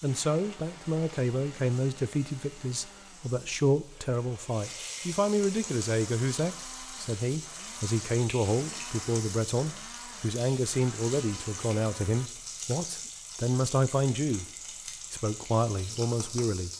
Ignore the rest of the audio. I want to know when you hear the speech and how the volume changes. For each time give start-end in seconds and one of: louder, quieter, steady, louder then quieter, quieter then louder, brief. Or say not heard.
0.0-14.4 steady
15.1-16.7 brief.